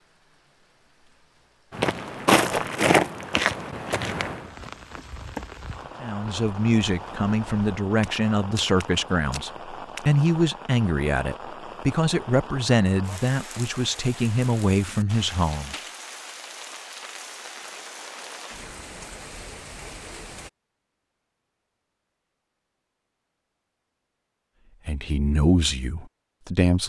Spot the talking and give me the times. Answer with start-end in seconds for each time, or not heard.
6.0-15.8, 24.9-26.8.